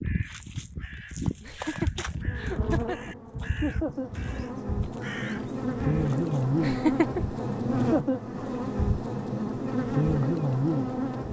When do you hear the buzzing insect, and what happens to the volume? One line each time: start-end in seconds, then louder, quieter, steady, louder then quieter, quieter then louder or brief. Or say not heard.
2.1-11.2 louder.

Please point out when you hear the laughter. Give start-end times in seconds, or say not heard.
1.4-3.1, 6.6-7.2.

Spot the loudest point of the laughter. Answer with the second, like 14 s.
7 s.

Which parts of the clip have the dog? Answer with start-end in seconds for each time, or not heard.
not heard.